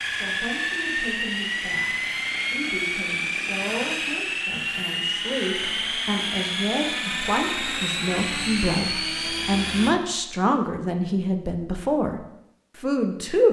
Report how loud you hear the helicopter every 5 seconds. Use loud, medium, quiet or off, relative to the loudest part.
loud, loud, off.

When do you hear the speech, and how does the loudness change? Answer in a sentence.
You can hear the speech from 0.0 to 13.4 s, getting louder.